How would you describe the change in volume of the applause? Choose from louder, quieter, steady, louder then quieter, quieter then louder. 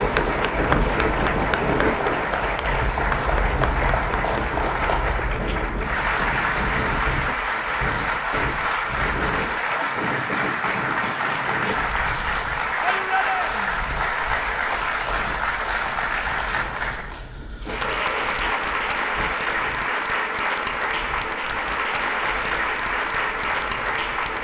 steady.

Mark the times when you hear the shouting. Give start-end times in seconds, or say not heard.
12.8-13.8.